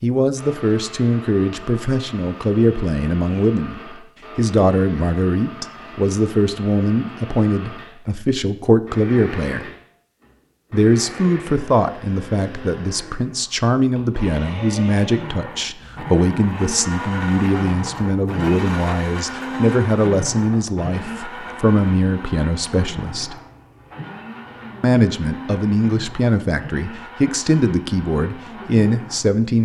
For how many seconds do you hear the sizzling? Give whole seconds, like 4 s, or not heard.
not heard.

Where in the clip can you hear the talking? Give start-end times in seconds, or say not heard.
0.0-9.7, 10.7-23.4, 24.8-29.5.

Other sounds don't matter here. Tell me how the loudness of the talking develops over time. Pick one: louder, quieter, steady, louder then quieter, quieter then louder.
steady.